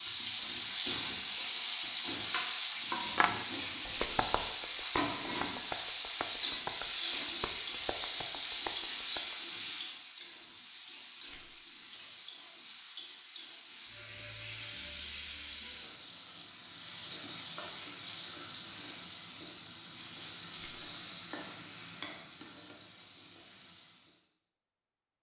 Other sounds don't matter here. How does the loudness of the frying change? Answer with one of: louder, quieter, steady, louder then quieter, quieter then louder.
quieter.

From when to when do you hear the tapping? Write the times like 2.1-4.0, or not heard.
3.1-9.3.